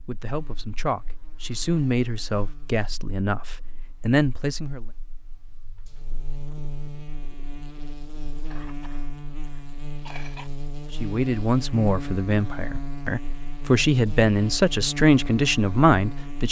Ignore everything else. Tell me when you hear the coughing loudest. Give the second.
10 s.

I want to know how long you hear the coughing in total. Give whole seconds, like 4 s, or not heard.
2 s.